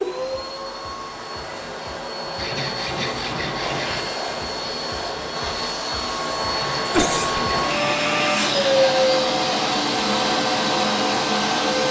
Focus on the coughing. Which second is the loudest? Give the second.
7 s.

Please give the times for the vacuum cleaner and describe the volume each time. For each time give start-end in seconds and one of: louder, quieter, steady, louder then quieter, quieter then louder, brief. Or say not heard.
0.0-11.8 louder.